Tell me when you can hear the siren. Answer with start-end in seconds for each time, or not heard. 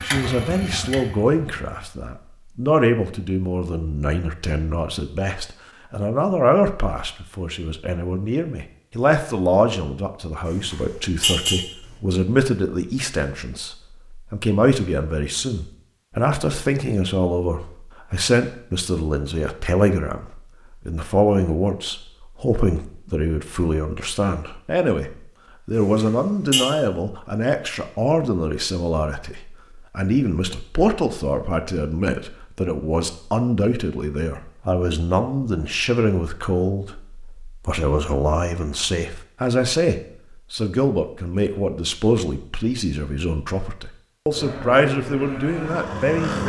not heard.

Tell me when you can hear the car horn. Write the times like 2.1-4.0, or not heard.
10.4-11.7, 25.8-26.7.